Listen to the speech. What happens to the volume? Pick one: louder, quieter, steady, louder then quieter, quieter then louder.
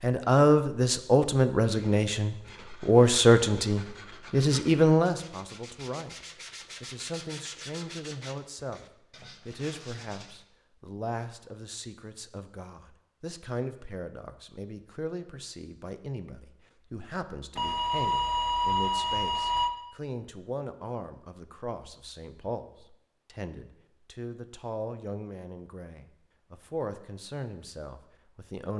quieter.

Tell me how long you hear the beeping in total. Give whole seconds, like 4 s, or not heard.
2 s.